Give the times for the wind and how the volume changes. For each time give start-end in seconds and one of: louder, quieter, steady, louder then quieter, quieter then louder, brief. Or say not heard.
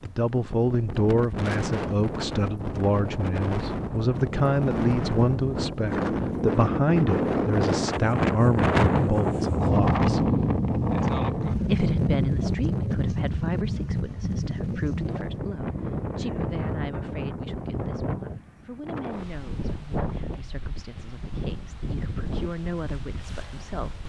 0.0-24.0 louder then quieter.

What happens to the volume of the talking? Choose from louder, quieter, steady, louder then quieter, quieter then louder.
quieter.